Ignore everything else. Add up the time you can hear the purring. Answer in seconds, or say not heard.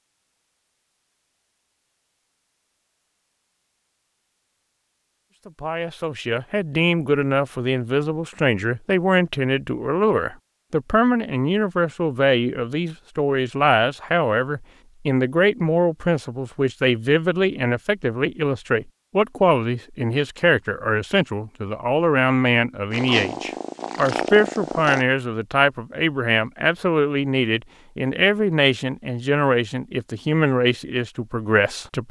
2 s.